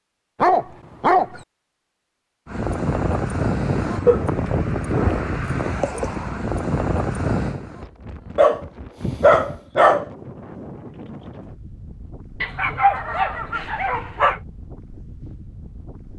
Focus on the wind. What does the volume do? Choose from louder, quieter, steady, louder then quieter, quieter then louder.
quieter.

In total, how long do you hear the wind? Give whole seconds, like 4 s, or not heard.
14 s.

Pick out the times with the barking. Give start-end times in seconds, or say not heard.
0.4-1.4, 4.0-6.0, 8.3-10.1, 12.4-14.4.